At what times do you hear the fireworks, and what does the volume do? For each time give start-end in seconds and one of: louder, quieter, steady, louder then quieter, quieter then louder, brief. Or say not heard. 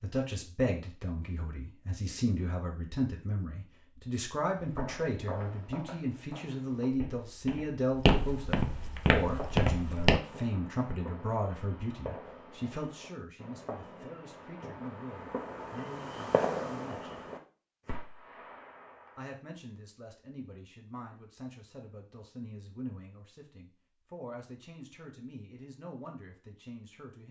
9.2-19.4 louder then quieter.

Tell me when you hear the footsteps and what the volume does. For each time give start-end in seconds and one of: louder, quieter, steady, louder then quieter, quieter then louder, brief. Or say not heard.
4.5-10.2 quieter then louder.